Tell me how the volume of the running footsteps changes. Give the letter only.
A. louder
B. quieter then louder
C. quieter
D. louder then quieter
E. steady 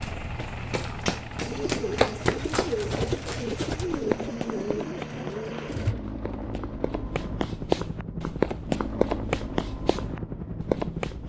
B.